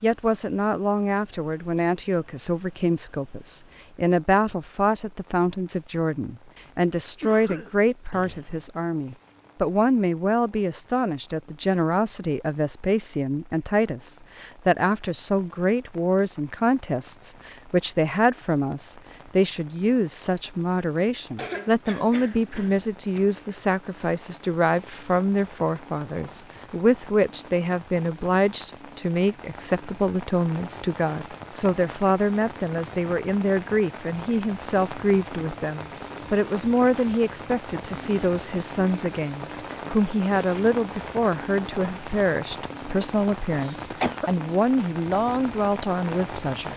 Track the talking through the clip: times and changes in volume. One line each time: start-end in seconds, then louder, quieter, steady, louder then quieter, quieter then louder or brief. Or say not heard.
0.0-46.7 steady.